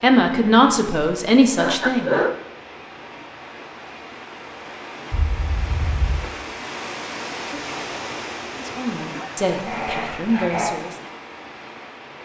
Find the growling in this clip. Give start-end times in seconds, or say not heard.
9.4-10.8.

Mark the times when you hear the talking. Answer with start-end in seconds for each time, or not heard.
0.0-2.1, 8.6-10.9.